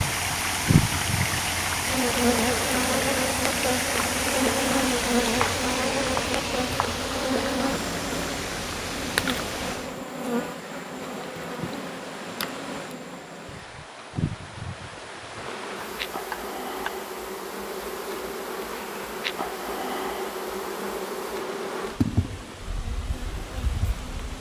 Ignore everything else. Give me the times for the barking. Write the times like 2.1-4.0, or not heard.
not heard.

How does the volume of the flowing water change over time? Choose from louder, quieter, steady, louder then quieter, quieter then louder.
quieter.